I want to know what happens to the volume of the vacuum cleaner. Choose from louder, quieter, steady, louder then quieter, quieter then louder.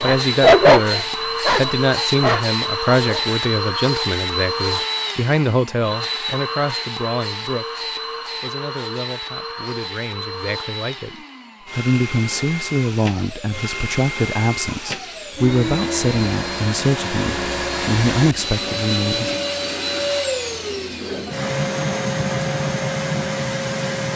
quieter then louder.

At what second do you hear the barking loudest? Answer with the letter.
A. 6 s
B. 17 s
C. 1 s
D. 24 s
C.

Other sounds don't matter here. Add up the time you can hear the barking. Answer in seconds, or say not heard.
3 s.